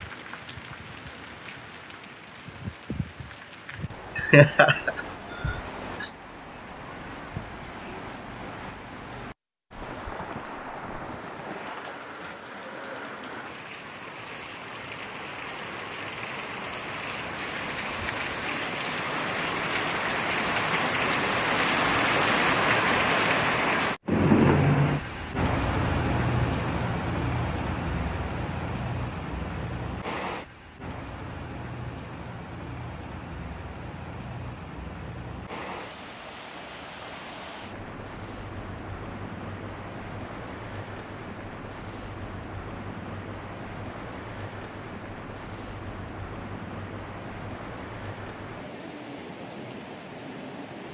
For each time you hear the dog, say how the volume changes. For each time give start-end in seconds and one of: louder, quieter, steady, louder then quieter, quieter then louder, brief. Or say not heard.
not heard.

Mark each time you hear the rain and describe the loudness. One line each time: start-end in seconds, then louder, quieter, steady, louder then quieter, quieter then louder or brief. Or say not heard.
0.0-50.8 louder then quieter.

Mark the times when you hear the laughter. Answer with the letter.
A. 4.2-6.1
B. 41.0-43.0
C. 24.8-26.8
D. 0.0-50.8
A.